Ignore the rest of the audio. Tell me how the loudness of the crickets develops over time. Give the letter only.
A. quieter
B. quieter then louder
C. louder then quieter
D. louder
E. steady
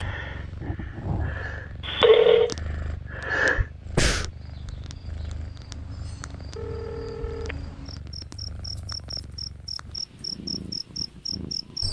D.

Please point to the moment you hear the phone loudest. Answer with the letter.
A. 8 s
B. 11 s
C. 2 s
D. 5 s
C.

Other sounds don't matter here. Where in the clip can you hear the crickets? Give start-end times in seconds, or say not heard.
4.2-11.8.